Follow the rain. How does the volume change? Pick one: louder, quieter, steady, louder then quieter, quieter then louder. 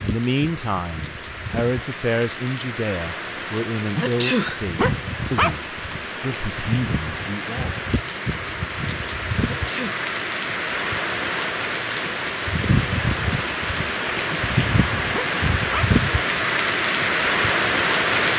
louder.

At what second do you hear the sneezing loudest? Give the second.
4 s.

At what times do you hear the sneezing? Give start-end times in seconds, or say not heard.
4.0-4.6, 9.4-10.1.